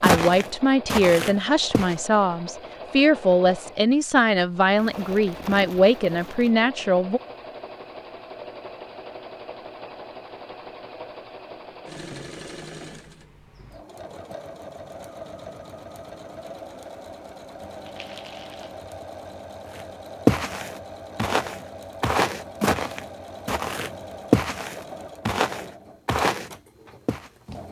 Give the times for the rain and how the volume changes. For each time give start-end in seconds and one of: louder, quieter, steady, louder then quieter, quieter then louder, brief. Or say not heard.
not heard.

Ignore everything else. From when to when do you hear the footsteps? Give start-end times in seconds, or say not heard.
0.0-1.9, 19.7-27.3.